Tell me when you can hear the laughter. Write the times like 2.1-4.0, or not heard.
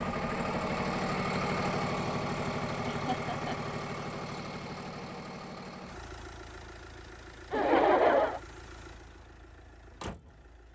2.9-3.8, 7.5-8.4.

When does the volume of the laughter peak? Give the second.
8 s.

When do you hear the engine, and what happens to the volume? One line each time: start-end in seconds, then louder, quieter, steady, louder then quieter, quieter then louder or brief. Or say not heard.
0.0-10.7 quieter.